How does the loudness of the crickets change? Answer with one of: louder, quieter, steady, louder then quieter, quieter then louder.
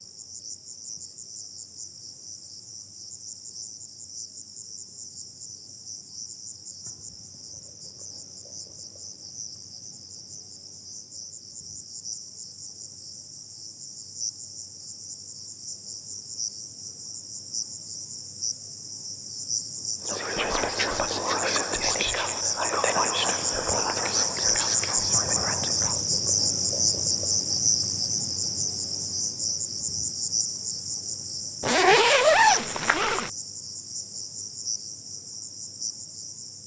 louder then quieter.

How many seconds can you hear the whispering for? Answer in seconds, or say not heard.
6 s.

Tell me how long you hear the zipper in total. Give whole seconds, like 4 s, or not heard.
2 s.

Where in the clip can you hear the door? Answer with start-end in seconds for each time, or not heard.
not heard.